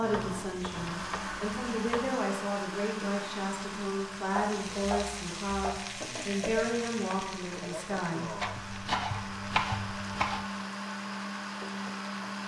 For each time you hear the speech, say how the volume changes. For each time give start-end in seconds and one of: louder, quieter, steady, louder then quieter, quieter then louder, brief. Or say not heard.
0.0-8.4 steady.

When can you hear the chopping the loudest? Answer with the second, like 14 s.
10 s.